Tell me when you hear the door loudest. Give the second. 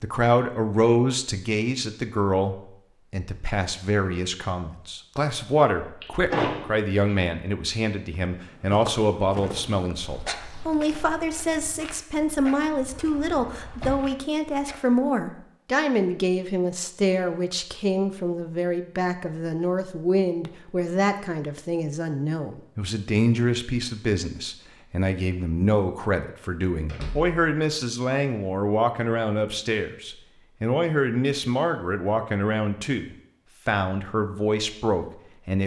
6 s.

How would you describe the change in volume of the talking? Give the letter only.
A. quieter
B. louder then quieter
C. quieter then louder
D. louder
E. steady
E.